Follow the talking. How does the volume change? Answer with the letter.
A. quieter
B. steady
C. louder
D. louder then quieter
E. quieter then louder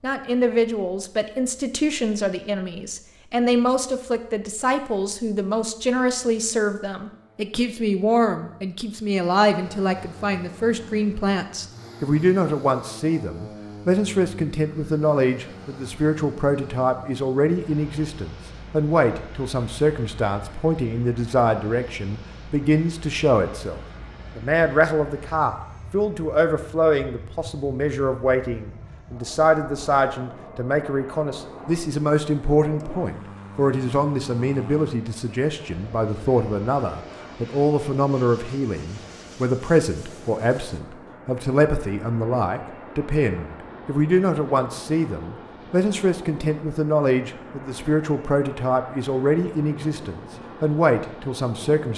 B.